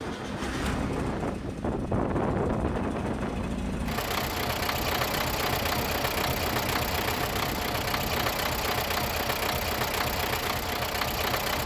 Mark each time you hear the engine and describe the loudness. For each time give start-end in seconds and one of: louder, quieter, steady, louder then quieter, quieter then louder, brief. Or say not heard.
0.0-11.6 louder.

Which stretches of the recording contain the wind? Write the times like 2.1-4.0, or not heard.
0.0-8.2.